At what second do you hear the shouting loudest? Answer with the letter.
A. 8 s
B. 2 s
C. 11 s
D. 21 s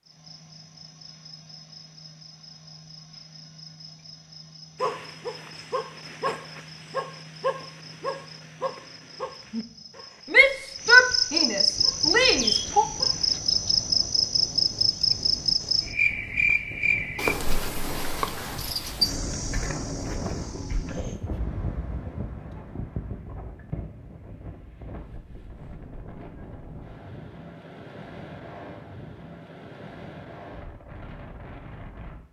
C.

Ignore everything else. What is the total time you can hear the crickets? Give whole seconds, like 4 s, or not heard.
21 s.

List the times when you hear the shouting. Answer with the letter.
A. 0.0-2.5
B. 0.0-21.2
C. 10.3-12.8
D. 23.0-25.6
C.